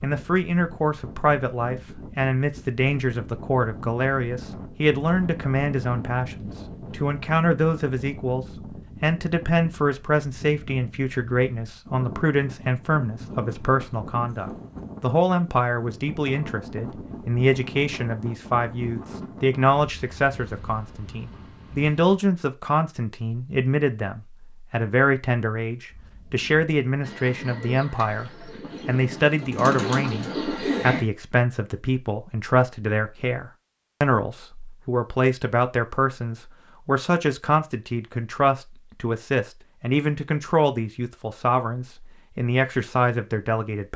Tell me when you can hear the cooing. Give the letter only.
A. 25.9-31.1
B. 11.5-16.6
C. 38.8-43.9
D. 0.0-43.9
A.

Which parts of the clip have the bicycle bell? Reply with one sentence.
The bicycle bell can't be heard in this clip.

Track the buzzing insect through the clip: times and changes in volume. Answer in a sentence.
You can't hear the buzzing insect here.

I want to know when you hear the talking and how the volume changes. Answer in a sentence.
You can hear the talking from 0.0 to 43.9 s, at a steady volume.